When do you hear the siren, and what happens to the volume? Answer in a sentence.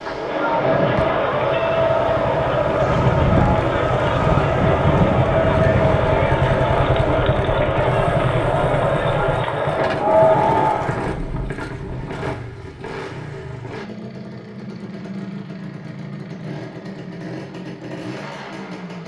The siren can't be heard in this clip.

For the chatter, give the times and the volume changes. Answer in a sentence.
You can hear the chatter from 0.0 to 11.2 s, at a steady volume.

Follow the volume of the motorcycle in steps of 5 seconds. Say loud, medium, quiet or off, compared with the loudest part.
medium, loud, medium, medium.